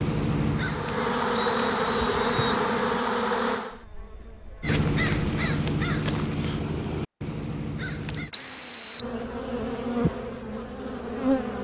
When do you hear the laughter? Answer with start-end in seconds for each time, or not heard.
not heard.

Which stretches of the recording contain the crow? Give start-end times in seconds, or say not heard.
0.0-3.0, 4.6-8.3.